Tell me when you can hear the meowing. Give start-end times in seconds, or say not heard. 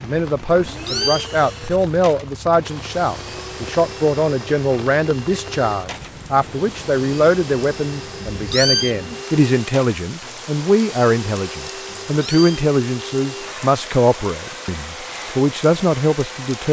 0.7-1.3, 8.3-8.9, 11.8-12.7.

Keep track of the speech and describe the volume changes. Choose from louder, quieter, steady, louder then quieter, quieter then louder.
steady.